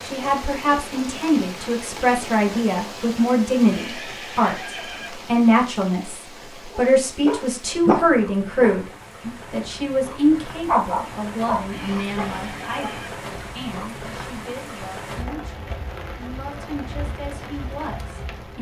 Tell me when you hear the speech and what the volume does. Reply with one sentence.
You can hear the speech from 0.0 to 18.5 s, getting quieter.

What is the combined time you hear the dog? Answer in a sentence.
The dog can be heard for 4 seconds in total.